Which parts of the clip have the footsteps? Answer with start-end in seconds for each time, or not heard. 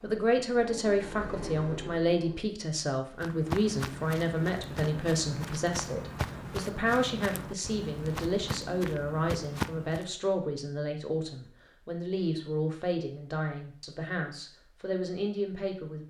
3.1-10.1.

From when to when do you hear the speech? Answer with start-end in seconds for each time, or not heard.
0.0-16.0.